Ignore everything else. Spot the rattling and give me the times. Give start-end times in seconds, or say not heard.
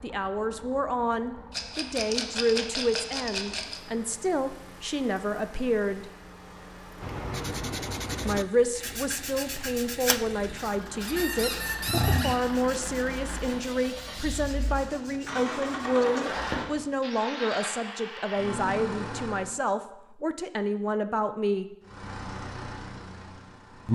1.5-3.8.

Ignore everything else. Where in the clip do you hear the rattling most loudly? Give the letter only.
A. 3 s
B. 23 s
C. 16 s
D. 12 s
A.